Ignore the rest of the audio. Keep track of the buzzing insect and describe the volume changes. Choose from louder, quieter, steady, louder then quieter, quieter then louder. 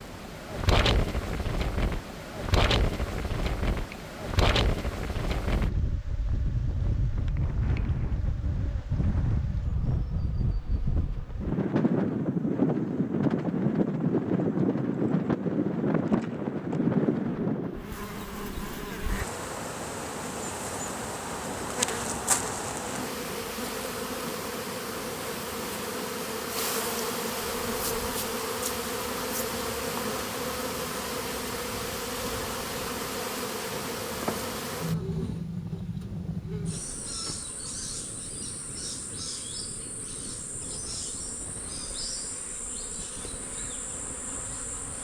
louder then quieter.